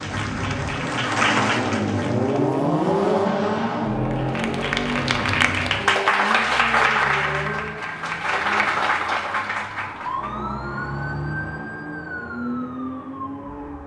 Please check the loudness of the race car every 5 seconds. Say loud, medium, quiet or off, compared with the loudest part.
loud, medium, medium.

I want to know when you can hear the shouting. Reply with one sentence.
The shouting can't be heard in this clip.